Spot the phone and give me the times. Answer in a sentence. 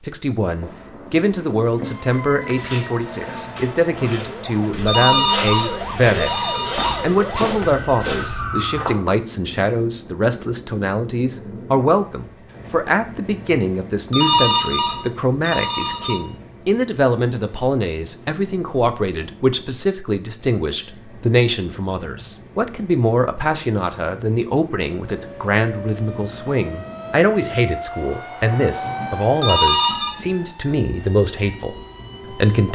The phone can be heard from 4.8 to 7.0 s, from 14.1 to 16.2 s and from 29.4 to 30.1 s.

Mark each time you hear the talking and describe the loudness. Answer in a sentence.
The talking can be heard from 0.0 to 32.7 s, at a steady volume.